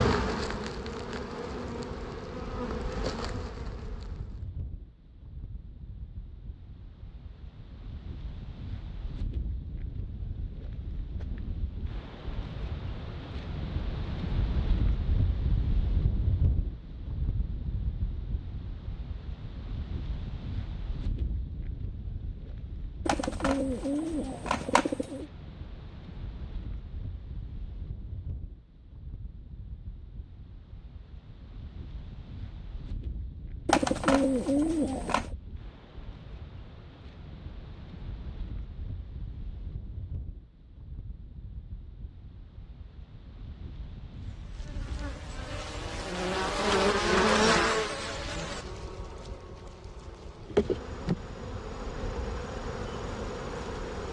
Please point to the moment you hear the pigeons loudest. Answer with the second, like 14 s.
34 s.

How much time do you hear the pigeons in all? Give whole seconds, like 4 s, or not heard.
4 s.